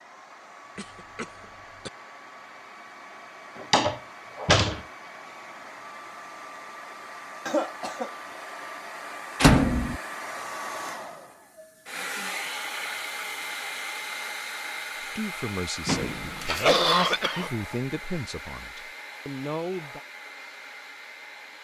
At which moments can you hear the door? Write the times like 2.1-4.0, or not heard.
3.7-4.8, 9.4-10.0, 15.8-17.2.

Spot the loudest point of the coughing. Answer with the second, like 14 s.
17 s.